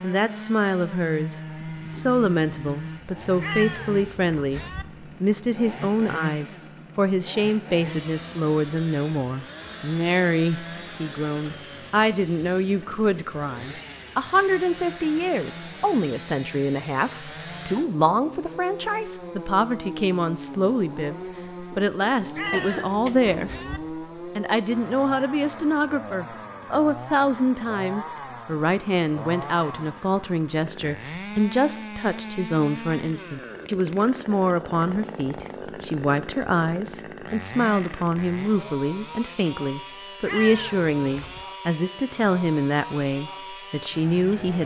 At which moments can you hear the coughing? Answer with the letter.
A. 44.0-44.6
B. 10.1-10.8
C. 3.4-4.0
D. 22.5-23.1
D.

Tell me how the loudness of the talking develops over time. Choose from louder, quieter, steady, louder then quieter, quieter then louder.
steady.